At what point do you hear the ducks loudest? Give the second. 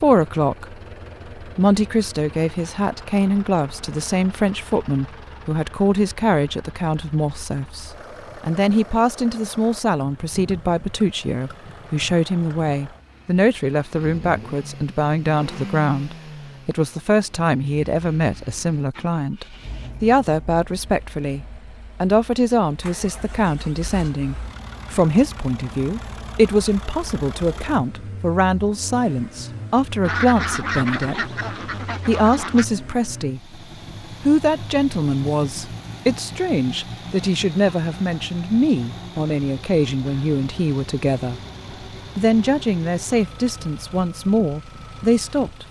30 s.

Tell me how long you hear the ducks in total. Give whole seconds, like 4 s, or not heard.
3 s.